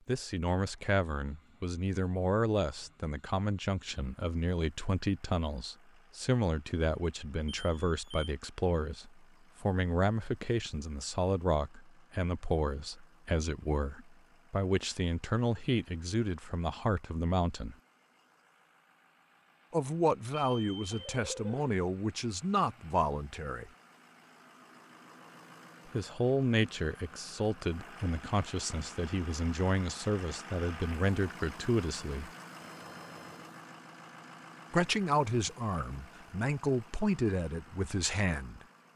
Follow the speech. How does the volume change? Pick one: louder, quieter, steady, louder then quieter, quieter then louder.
steady.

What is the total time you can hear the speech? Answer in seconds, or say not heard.
32 s.